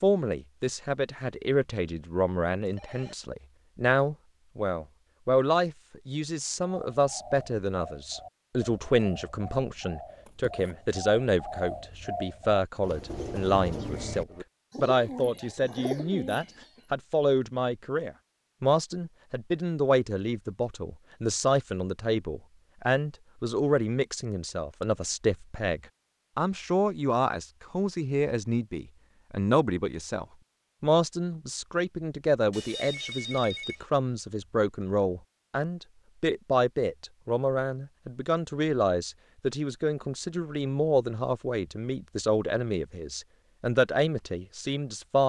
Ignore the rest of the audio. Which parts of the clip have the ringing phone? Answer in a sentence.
You can hear the ringing phone from 2.6 to 3.1 s, from 24.5 to 25.1 s and from 32.5 to 33.9 s.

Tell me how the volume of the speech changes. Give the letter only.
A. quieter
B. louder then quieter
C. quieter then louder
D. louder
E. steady
E.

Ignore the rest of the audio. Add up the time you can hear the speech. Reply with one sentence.
You can hear the speech for 45 seconds altogether.